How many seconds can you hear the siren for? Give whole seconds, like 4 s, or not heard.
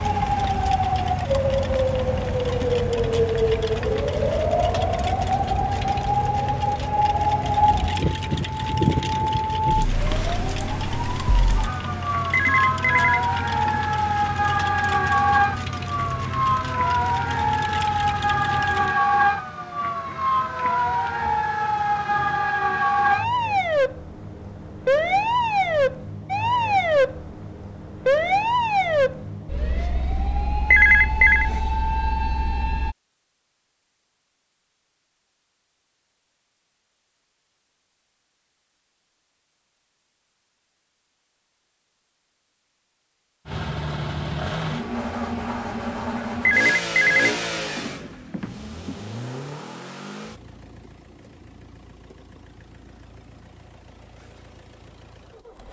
33 s.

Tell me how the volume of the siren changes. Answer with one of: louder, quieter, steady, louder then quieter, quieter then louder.
steady.